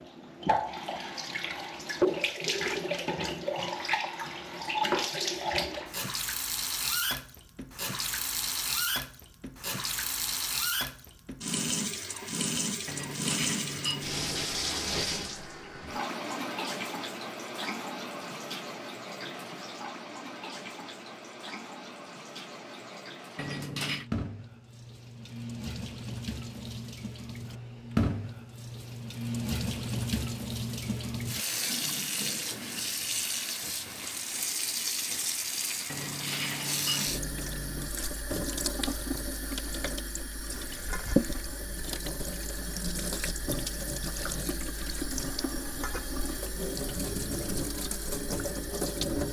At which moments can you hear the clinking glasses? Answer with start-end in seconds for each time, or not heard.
12.8-14.6, 23.4-24.1, 35.9-37.9.